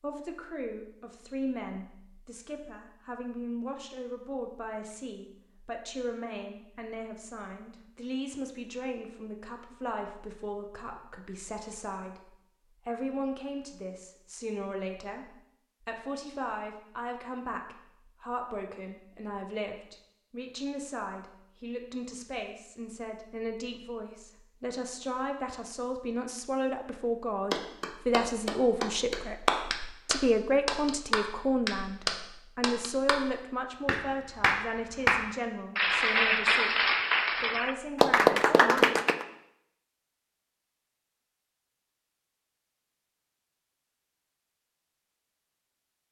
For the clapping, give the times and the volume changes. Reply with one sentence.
You can hear the clapping from 27.5 to 39.2 s, getting quieter then louder.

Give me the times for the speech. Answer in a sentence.
The speech can be heard from 0.0 to 39.0 s.